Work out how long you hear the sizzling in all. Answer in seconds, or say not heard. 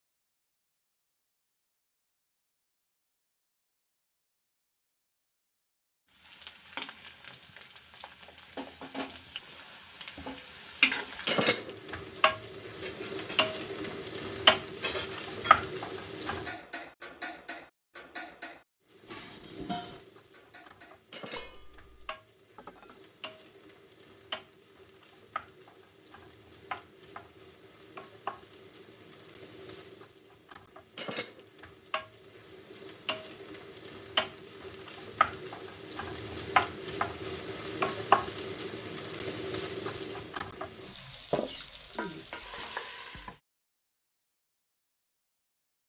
35 s.